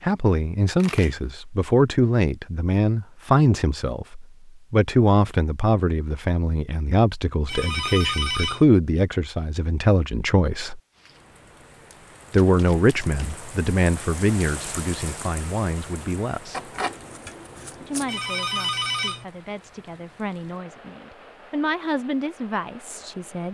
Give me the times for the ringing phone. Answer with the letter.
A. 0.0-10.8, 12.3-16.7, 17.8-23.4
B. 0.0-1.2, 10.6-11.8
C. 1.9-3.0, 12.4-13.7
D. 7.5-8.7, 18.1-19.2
D.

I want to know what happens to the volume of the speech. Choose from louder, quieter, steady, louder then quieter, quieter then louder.
quieter.